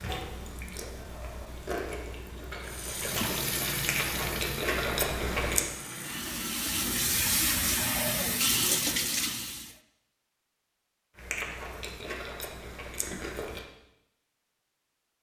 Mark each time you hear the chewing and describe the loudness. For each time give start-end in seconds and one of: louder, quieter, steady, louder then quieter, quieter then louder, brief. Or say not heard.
0.0-5.7 louder
11.2-13.7 brief.